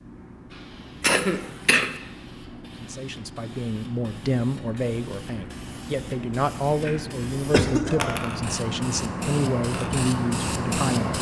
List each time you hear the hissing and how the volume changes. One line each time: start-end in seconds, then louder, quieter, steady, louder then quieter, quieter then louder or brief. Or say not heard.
0.0-11.1 louder.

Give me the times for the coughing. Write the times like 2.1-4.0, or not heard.
1.0-1.9, 7.5-8.0.